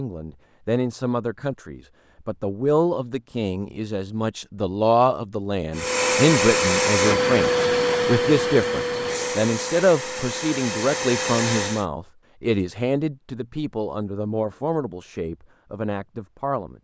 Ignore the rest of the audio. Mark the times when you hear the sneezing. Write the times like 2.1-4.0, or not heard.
not heard.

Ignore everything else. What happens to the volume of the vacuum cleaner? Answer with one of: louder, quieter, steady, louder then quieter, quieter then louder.
quieter.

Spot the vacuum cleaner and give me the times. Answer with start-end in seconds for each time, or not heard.
5.7-11.8.